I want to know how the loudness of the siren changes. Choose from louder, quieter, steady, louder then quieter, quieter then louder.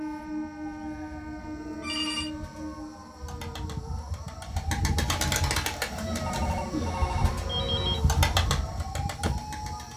louder.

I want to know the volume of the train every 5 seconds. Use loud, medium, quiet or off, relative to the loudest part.
loud, off.